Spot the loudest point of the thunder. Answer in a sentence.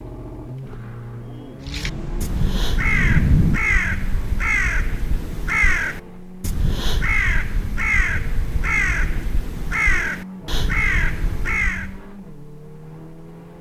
The volume of the thunder peaks at 3 seconds.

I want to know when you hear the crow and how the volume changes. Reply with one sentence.
The crow can be heard from 1.6 to 12.1 s, at a steady volume.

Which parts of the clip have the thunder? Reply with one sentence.
You can hear the thunder from 1.9 to 3.6 s.